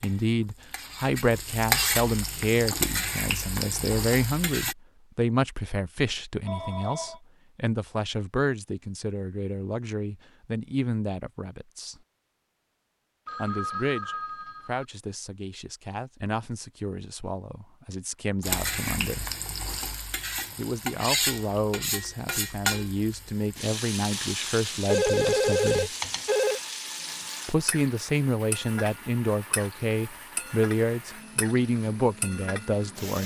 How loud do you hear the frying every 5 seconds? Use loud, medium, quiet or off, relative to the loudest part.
loud, off, off, loud, loud, medium, medium.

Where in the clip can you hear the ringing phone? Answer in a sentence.
You can hear the ringing phone from 6.5 to 7.2 s, from 13.2 to 14.8 s and from 24.9 to 26.6 s.